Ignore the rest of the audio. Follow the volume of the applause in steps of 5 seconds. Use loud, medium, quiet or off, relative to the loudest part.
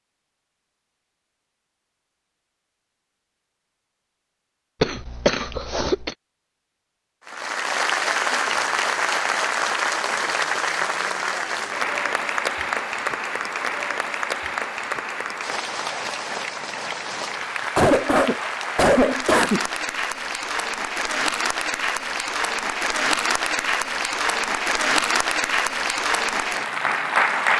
off, loud, loud, medium, loud, loud.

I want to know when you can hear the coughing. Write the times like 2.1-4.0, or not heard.
4.8-6.1, 17.8-19.6.